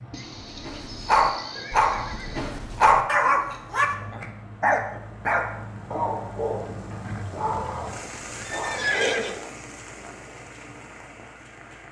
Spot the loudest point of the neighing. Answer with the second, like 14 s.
9 s.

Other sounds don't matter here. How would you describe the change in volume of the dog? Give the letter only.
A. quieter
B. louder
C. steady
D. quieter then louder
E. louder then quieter
A.